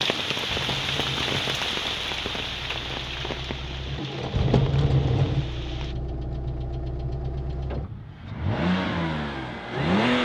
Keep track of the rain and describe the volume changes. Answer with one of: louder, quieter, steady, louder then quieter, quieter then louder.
quieter.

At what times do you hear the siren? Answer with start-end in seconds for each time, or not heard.
not heard.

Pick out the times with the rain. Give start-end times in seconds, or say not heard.
0.0-6.0.